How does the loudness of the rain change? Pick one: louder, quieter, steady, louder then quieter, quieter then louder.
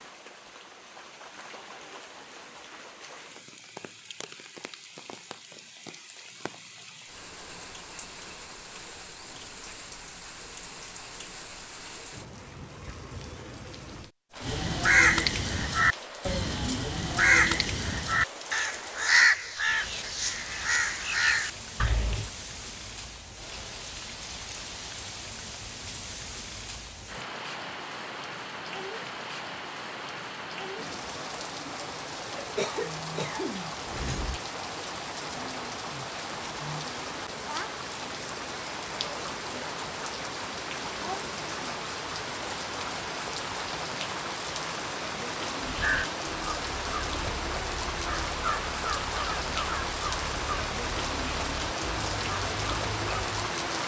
louder.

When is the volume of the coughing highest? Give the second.
33 s.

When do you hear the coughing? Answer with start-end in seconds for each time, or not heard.
32.4-34.4.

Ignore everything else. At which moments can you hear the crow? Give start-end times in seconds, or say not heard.
14.4-22.3, 45.6-53.4.